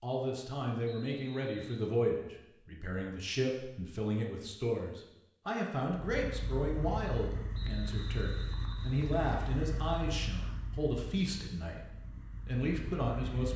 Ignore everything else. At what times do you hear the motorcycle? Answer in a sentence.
You can hear the motorcycle from 6.0 to 13.5 s.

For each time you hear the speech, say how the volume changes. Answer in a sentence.
You can hear the speech from 0.0 to 11.8 s, at a steady volume; and briefly from 12.4 to 13.5 s.